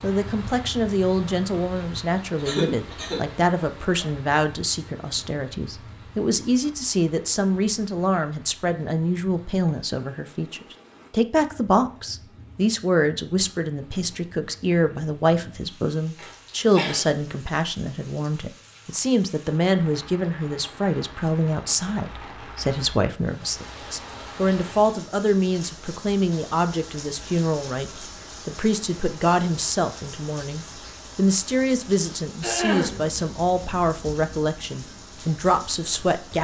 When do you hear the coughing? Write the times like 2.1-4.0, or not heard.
2.4-3.2, 16.1-17.1, 32.4-33.0.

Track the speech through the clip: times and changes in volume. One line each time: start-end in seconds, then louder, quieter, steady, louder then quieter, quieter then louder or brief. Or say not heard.
0.0-36.3 steady.